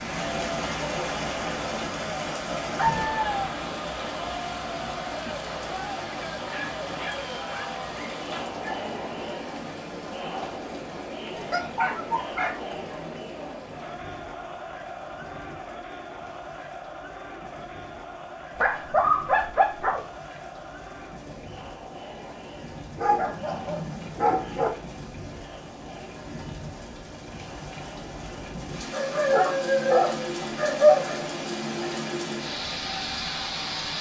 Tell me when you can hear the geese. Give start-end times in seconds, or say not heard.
not heard.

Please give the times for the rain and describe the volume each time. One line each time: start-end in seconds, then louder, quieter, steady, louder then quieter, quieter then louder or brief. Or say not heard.
0.0-33.9 quieter then louder.